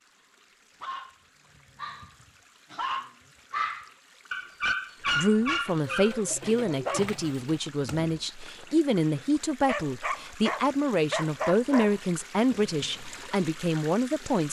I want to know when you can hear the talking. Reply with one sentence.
You can hear the talking from 5.2 to 14.4 s.